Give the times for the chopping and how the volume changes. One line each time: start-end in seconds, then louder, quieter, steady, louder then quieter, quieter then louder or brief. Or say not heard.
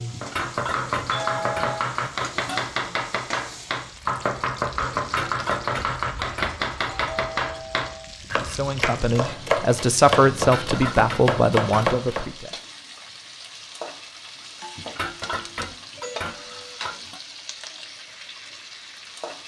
0.2-12.3 steady.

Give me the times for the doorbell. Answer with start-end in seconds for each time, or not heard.
1.1-1.9, 7.0-8.2, 15.9-16.8.